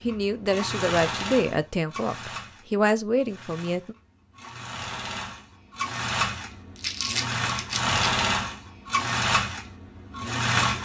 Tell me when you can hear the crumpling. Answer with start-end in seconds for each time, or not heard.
6.8-8.0.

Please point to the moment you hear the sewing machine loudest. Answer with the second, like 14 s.
8 s.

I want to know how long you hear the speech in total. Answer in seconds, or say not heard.
4 s.